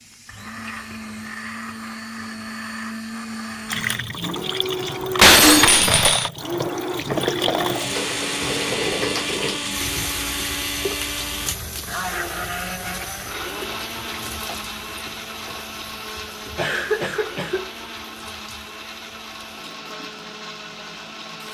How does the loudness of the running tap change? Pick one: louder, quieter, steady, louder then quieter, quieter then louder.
quieter.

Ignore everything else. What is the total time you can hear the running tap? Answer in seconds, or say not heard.
18 s.